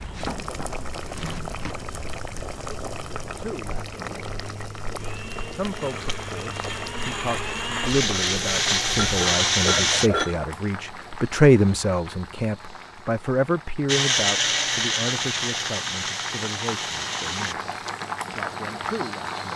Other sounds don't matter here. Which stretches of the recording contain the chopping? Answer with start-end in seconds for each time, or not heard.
0.0-1.8.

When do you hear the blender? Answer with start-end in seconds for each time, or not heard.
5.0-10.1, 13.8-17.6.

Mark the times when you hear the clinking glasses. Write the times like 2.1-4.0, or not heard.
8.9-10.3.